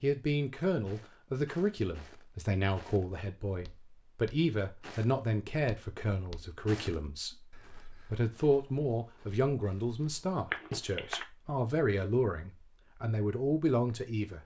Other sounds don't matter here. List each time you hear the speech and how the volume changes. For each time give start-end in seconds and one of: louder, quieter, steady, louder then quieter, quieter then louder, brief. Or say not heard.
0.0-14.4 steady.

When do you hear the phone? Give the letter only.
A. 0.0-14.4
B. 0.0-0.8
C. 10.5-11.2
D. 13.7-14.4
C.